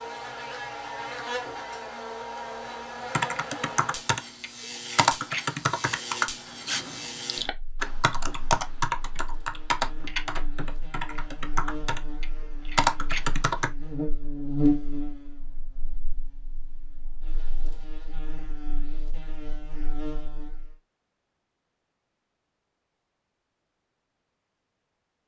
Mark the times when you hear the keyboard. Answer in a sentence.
You can hear the keyboard from 3.1 to 13.7 s.